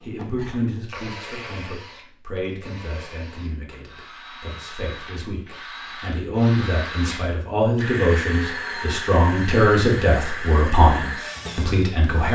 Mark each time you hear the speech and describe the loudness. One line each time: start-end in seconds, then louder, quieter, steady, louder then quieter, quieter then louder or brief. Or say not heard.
0.0-12.3 quieter then louder.